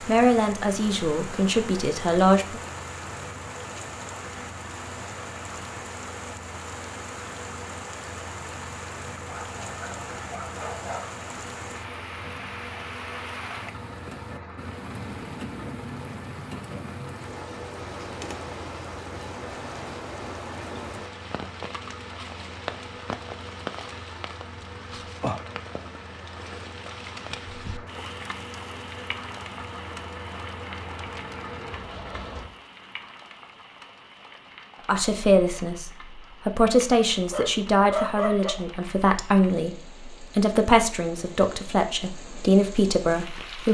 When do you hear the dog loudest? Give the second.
38 s.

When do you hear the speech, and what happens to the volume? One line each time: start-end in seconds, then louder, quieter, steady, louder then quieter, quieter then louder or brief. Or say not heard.
0.0-2.6 brief
34.9-43.7 steady.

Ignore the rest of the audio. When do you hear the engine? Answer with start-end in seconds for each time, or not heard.
0.0-32.5.